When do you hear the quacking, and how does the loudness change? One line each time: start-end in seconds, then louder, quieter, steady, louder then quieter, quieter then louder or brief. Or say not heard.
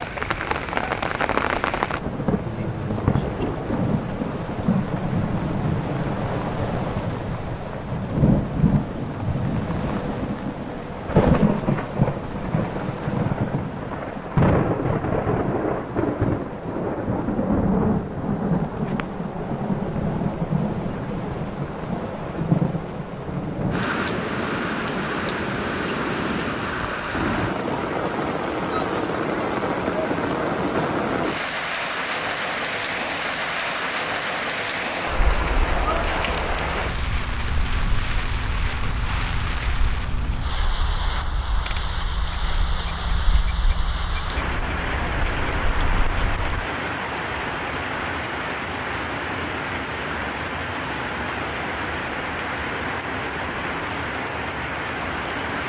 35.0-46.6 steady.